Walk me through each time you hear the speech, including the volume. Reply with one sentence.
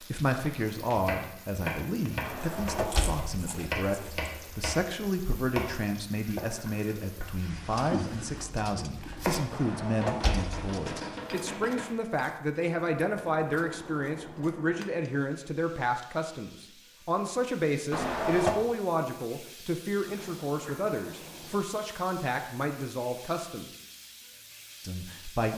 The speech can be heard from 0.0 to 23.7 s, at a steady volume; and briefly from 24.8 to 25.5 s.